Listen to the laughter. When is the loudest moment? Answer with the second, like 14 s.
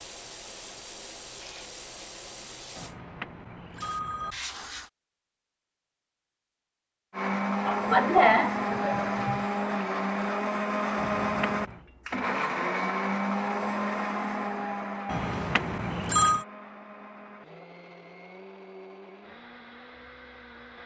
8 s.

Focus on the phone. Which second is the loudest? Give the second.
16 s.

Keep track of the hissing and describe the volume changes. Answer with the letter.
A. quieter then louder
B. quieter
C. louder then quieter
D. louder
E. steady
A.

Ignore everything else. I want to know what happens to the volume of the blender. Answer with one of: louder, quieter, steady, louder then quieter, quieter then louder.
quieter.